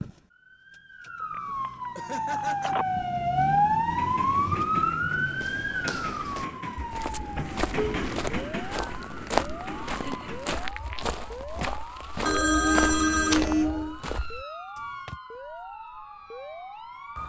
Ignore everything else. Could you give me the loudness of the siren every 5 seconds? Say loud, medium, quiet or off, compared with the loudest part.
loud, medium, quiet, quiet.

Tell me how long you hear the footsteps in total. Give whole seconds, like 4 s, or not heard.
10 s.